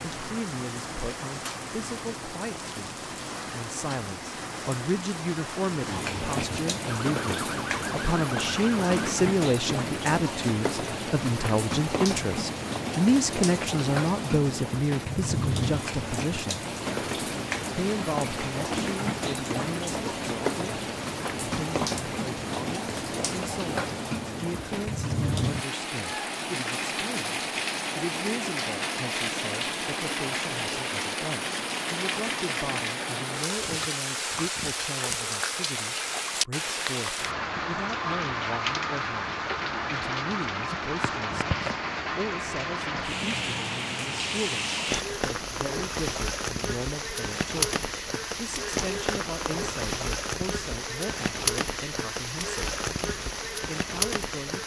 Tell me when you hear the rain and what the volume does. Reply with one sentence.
The rain can be heard from 0.0 to 54.6 s, at a steady volume.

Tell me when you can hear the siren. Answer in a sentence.
You can hear the siren from 6.8 to 8.9 s.